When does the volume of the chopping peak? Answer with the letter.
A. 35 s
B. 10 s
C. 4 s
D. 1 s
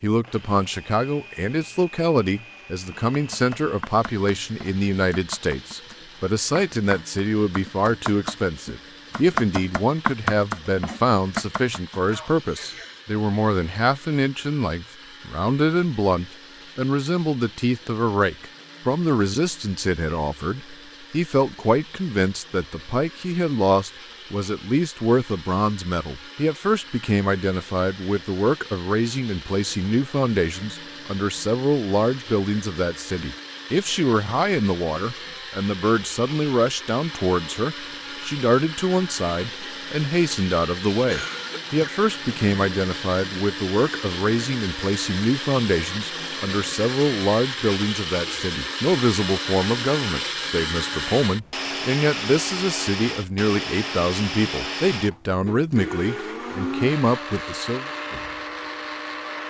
B.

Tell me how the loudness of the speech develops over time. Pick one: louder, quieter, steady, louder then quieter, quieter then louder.
steady.